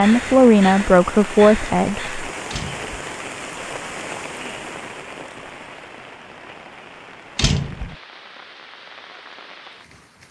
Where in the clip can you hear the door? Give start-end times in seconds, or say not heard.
2.5-3.1, 7.3-8.0.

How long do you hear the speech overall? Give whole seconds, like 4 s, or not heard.
2 s.